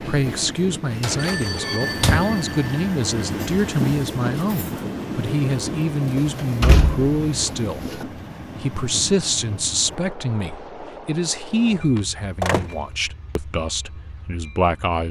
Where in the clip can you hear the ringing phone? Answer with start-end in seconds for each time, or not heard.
1.1-2.9.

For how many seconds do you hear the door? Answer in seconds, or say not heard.
4 s.